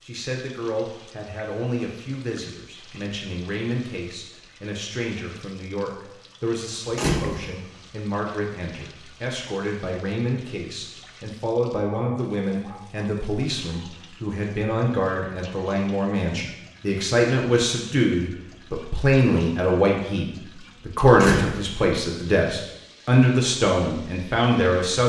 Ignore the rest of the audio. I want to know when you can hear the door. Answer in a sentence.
The door can be heard from 7.0 to 7.7 s and from 21.1 to 21.8 s.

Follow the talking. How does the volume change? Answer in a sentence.
The loudness of the talking goes up.